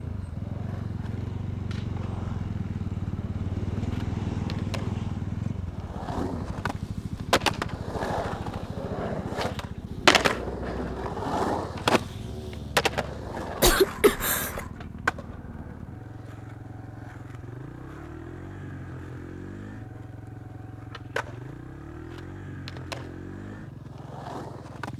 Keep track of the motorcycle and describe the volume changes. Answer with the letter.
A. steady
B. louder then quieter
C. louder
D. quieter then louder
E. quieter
E.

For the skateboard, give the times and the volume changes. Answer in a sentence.
You can hear the skateboard from 0.0 to 24.9 s, getting louder then quieter.